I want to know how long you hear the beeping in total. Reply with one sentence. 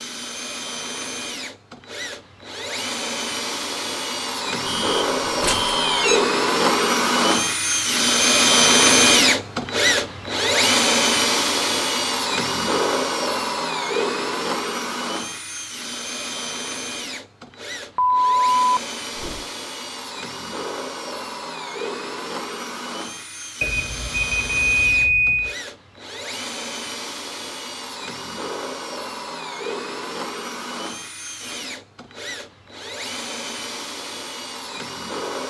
You can hear the beeping for 5 seconds altogether.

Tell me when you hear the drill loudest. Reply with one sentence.
The loudest moment of the drill is at 9 seconds.